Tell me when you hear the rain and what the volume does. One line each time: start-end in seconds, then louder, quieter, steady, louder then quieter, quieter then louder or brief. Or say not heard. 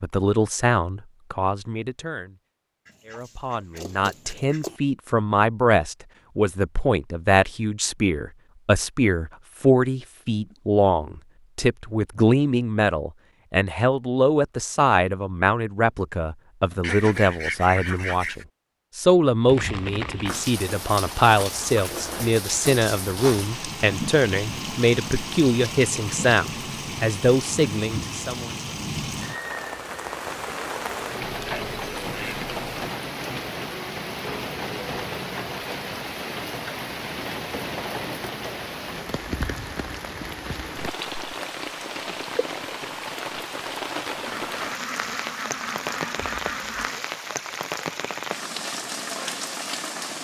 19.4-50.1 steady.